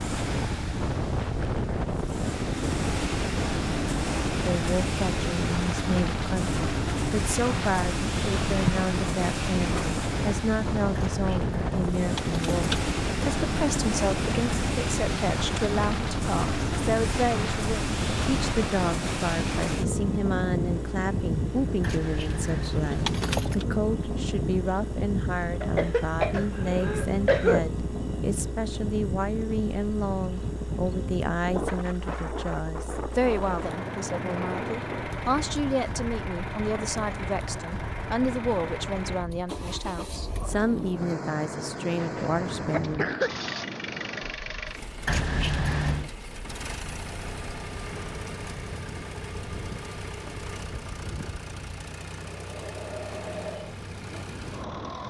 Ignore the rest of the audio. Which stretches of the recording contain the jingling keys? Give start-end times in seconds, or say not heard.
10.9-12.9, 21.8-23.6, 45.0-46.1.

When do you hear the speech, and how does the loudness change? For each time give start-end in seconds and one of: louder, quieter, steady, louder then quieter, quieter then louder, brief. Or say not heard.
4.3-43.1 steady.